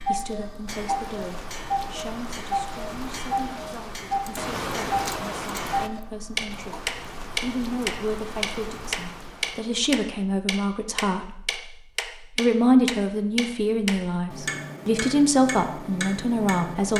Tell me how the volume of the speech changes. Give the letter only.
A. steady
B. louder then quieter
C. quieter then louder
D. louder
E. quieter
D.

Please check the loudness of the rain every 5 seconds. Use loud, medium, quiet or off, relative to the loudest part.
loud, loud, off, off.